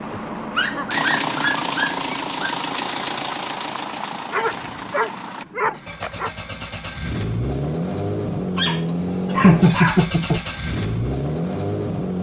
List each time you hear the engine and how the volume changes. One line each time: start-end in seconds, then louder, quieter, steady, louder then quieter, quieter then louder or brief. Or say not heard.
0.0-12.1 quieter then louder.